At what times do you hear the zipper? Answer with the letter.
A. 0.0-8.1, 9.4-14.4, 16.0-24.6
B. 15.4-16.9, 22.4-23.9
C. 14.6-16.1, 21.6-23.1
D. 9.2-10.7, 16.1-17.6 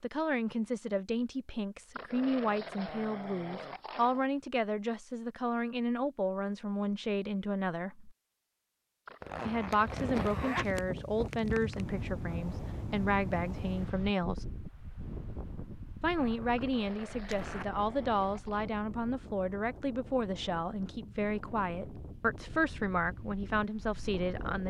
D.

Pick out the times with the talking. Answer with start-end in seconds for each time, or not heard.
0.0-8.1, 9.4-14.4, 16.0-24.6.